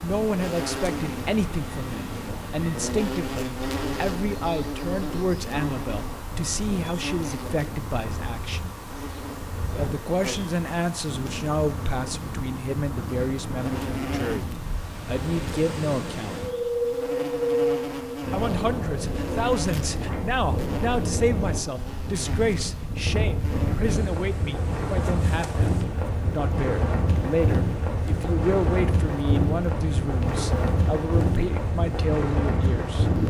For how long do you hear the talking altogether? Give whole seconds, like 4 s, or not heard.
30 s.